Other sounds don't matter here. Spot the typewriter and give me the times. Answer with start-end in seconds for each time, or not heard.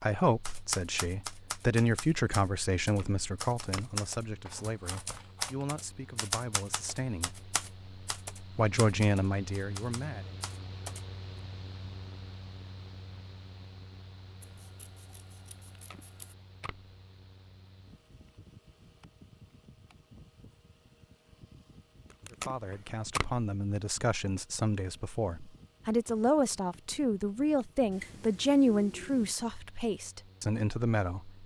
0.5-11.0.